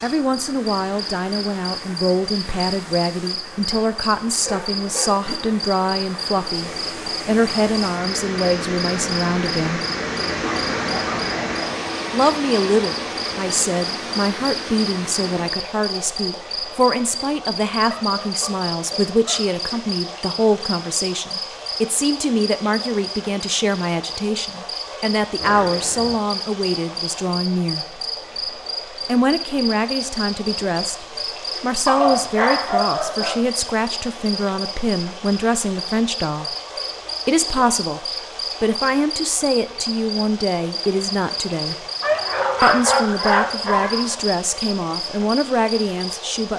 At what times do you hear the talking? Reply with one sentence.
You can hear the talking from 0.0 to 9.8 s, from 12.1 to 27.9 s, from 29.1 to 36.5 s, from 37.2 to 41.9 s and from 42.6 to 46.5 s.